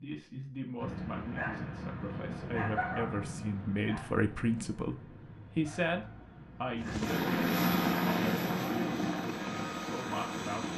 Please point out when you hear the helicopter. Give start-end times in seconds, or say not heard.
6.8-10.7.